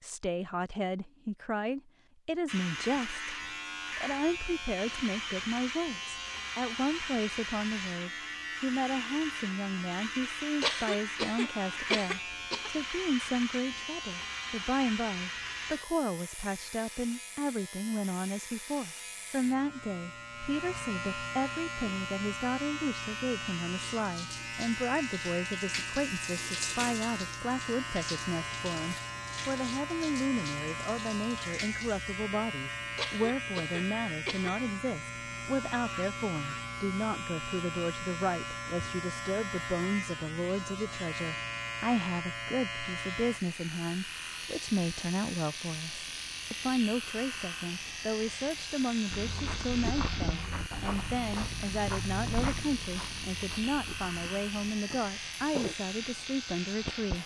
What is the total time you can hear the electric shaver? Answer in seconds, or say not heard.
55 s.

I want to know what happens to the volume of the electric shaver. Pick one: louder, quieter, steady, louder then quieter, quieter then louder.
steady.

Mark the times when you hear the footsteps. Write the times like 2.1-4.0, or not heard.
49.1-55.8.